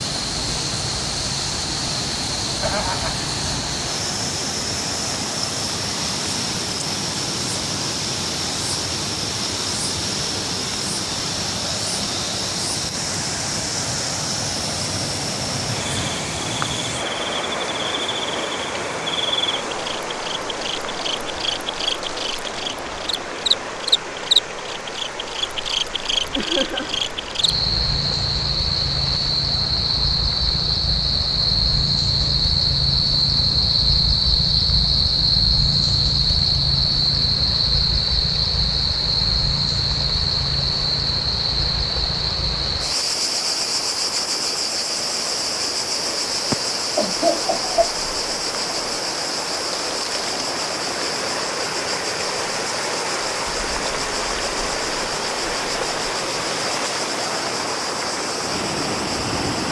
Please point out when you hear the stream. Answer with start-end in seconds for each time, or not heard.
0.0-59.6.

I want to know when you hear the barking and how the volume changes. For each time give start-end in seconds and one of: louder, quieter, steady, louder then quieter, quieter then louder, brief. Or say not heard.
not heard.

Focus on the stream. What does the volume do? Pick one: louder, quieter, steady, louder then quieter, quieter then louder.
quieter then louder.